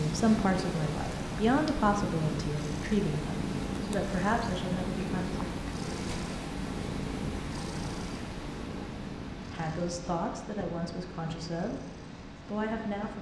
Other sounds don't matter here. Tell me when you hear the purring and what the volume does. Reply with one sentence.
The purring can be heard from 0.0 to 13.1 s, getting quieter.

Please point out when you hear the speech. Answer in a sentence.
You can hear the speech from 0.0 to 5.5 s, from 9.5 to 11.8 s and from 12.4 to 13.1 s.